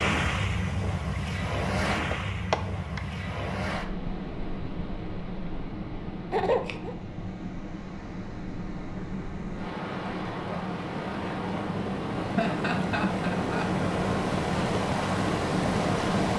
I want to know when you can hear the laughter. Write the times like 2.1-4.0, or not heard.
2.1-3.0, 6.3-7.0, 12.2-13.8.